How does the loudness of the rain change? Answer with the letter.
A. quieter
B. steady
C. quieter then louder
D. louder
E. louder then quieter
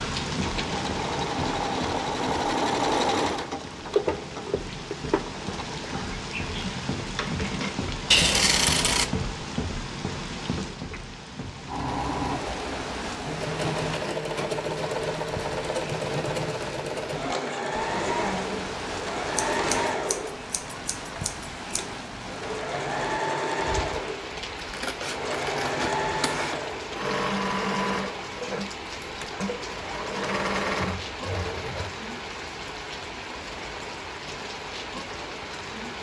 B.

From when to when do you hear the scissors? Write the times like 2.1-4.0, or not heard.
8.1-9.1, 19.4-21.9, 24.6-26.6.